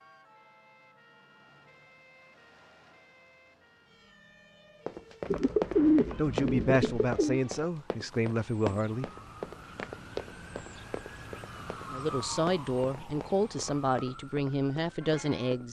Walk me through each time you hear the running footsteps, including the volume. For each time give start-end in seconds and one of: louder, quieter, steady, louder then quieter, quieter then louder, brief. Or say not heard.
4.8-15.6 quieter.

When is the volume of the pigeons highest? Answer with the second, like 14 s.
6 s.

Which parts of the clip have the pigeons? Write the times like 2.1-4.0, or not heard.
5.3-7.4.